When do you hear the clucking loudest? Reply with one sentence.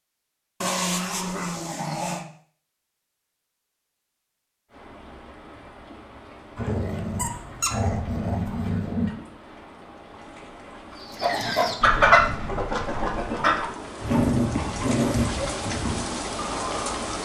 The volume of the clucking peaks at 12 seconds.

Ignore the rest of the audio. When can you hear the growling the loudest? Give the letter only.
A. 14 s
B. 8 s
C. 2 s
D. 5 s
A.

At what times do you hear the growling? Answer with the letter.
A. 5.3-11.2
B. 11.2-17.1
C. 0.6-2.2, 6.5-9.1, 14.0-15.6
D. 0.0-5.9
C.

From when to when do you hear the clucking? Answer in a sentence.
The clucking can be heard from 11.2 to 17.1 s.